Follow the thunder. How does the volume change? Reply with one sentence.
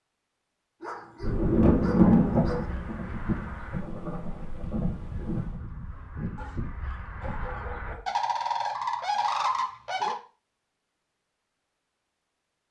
The volume of the thunder goes down.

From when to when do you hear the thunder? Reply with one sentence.
The thunder can be heard from 1.2 to 5.5 s.